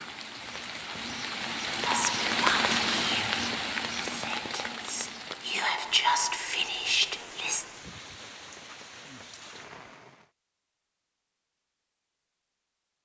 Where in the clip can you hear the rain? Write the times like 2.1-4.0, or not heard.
0.0-10.3.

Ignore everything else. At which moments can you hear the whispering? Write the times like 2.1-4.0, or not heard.
1.9-7.7.